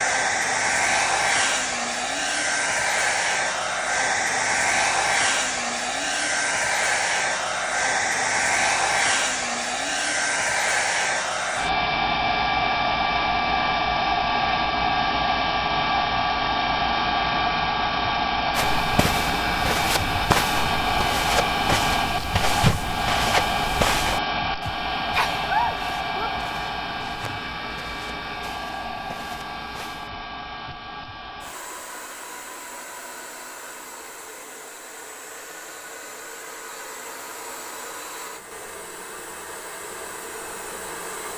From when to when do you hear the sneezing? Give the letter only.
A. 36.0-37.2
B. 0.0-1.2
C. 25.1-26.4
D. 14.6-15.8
C.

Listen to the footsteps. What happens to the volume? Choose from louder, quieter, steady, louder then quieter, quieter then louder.
quieter.